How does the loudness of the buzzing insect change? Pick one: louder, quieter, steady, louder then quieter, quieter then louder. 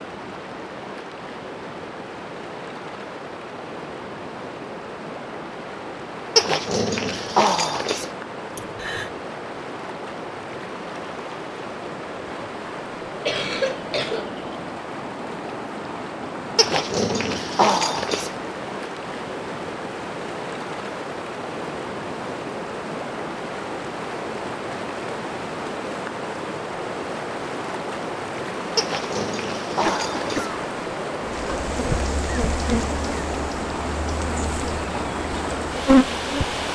quieter then louder.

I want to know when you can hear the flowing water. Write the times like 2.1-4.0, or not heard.
0.0-36.7.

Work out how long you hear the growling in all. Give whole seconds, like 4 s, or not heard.
5 s.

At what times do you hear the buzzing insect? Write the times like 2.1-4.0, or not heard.
31.2-36.7.